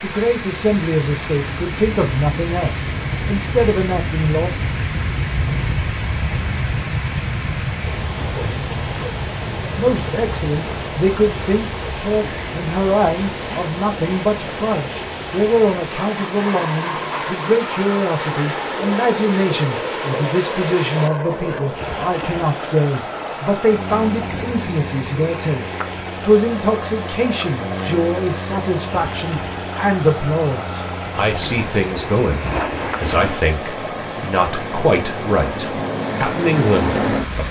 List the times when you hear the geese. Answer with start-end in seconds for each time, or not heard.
not heard.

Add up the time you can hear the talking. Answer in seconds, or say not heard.
32 s.